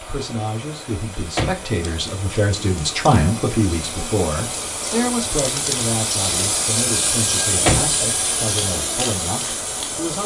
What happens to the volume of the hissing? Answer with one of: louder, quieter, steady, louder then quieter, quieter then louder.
louder.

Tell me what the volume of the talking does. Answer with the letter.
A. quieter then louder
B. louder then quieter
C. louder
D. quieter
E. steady
B.